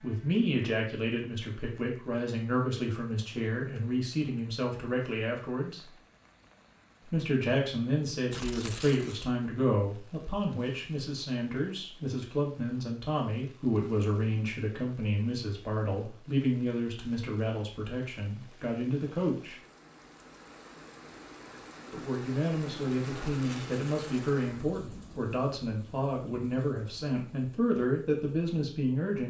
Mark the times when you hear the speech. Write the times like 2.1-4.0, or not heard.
0.0-5.8, 7.0-19.6, 21.9-29.2.